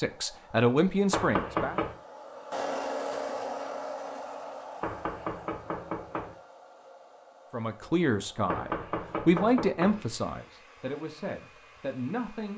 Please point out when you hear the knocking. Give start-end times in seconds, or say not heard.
1.1-1.9, 4.8-6.3, 8.4-10.0.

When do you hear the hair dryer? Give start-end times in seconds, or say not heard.
0.0-12.5.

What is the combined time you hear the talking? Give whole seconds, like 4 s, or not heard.
7 s.